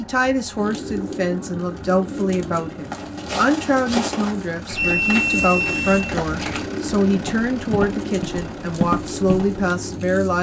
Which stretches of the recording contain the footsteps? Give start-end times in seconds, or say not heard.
2.9-9.7.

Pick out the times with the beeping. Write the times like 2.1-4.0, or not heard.
4.8-6.1.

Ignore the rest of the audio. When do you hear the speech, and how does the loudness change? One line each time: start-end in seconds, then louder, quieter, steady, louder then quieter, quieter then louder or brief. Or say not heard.
0.0-10.3 steady.